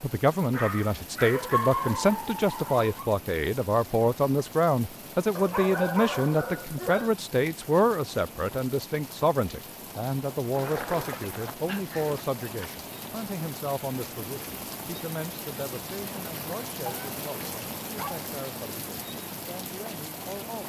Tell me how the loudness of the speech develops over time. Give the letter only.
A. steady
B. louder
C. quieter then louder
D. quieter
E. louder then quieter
D.